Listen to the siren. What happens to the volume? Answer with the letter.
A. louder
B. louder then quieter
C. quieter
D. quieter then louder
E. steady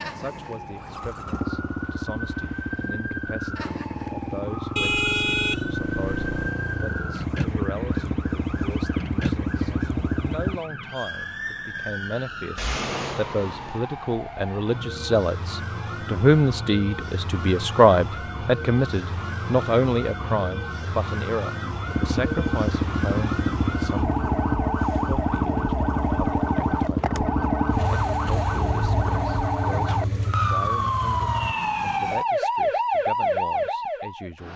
A.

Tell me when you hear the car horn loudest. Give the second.
5 s.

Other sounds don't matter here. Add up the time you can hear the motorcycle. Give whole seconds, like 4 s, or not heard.
20 s.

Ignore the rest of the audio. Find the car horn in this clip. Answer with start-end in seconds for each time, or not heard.
4.8-6.5.